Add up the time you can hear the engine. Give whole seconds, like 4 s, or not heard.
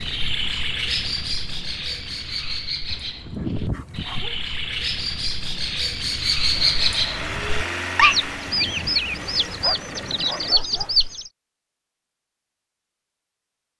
4 s.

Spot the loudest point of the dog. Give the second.
4 s.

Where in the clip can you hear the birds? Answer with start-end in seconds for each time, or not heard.
0.0-11.3.